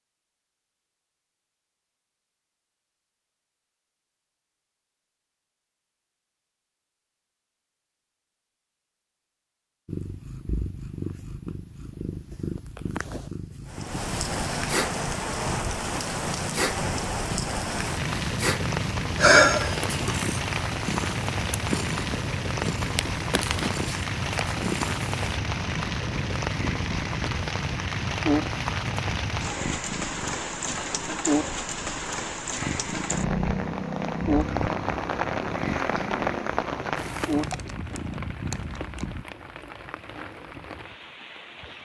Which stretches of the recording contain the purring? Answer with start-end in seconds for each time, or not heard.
9.8-39.2.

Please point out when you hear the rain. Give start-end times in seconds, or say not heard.
13.7-41.8.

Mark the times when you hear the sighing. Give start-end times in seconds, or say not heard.
19.1-20.2.